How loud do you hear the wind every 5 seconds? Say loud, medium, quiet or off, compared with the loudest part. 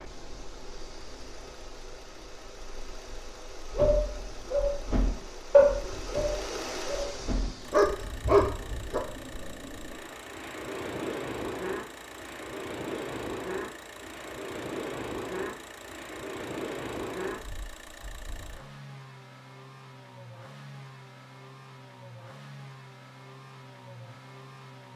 quiet, medium, loud, loud, off.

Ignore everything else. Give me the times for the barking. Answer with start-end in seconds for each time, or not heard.
3.7-9.0.